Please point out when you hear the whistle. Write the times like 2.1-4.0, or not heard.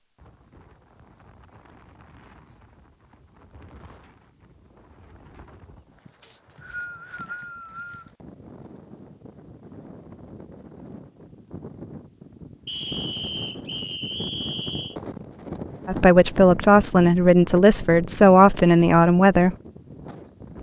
6.2-8.1, 12.7-14.9.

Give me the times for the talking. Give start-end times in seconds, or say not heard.
15.8-19.6.